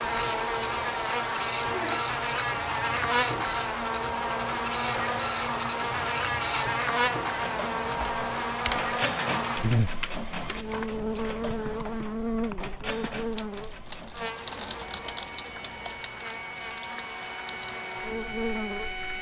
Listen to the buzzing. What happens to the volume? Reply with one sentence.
The volume of the buzzing goes down.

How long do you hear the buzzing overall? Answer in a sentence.
The buzzing can be heard for 19 seconds in total.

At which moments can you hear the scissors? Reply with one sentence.
The scissors can be heard from 15.1 to 15.5 s.